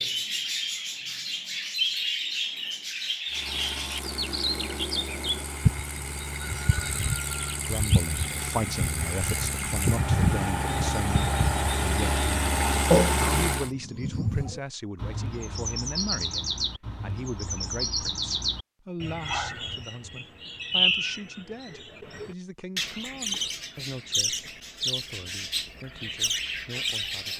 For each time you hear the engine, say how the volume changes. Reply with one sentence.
The engine can be heard from 3.2 to 13.7 s, getting louder.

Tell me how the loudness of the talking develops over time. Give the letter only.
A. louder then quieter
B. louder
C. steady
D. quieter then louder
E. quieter
E.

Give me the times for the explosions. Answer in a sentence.
The explosions can't be heard in this clip.